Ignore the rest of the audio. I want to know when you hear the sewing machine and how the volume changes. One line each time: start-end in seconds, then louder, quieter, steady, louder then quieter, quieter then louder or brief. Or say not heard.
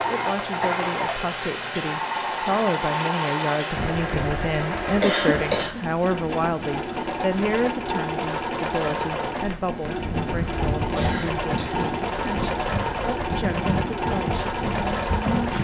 0.0-15.5 steady.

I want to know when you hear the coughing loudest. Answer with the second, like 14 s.
5 s.